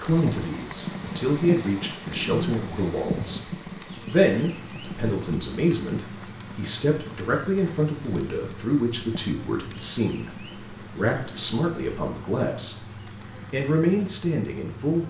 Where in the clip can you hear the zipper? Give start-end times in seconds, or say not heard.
2.0-3.5.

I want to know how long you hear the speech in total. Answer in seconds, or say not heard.
14 s.